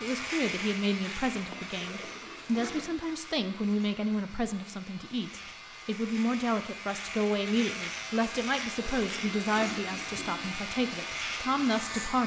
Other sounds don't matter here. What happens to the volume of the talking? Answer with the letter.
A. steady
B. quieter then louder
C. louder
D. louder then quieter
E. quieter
A.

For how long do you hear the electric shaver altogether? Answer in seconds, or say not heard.
12 s.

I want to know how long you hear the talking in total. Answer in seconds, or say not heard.
12 s.